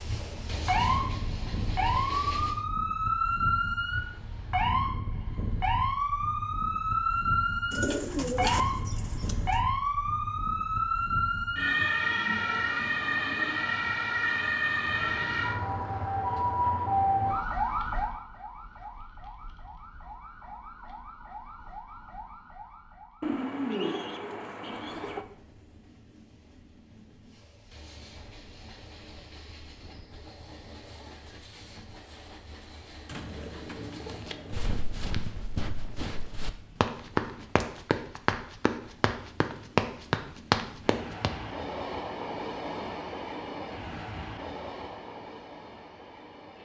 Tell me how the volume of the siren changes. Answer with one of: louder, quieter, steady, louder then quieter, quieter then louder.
quieter.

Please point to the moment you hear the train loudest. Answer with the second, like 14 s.
42 s.